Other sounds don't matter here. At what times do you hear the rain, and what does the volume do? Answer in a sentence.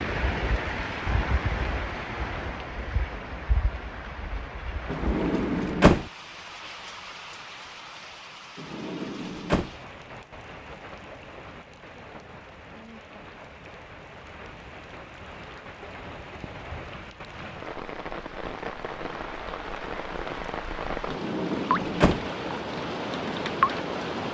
You can hear the rain from 0.0 to 24.3 s, getting quieter then louder.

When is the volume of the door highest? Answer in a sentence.
The loudest moment of the door is at 6 seconds.